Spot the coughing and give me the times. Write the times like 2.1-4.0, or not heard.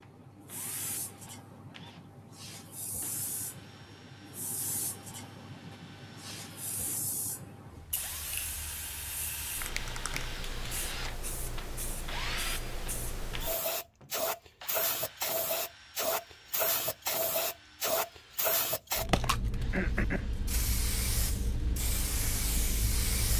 19.2-20.3.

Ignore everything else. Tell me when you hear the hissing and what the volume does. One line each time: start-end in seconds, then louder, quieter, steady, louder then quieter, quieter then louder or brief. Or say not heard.
0.0-23.3 louder.